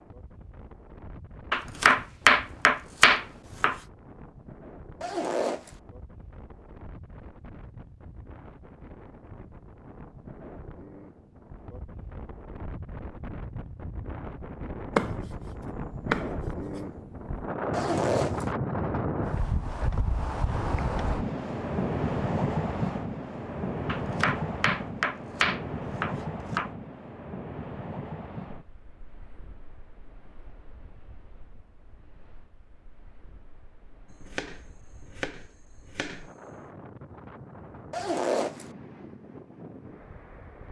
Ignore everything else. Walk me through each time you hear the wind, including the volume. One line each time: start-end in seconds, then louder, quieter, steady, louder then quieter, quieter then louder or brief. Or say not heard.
0.0-40.6 louder then quieter.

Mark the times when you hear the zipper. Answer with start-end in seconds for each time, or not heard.
5.0-5.7, 17.7-18.4, 37.9-38.6.